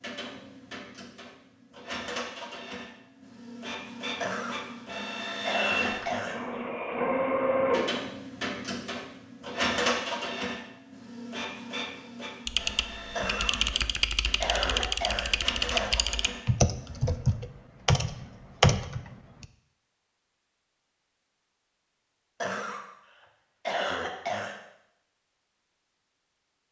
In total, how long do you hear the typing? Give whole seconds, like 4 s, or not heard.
7 s.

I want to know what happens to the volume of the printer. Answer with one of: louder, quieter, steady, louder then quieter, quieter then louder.
louder then quieter.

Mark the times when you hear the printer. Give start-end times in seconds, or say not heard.
0.0-17.2.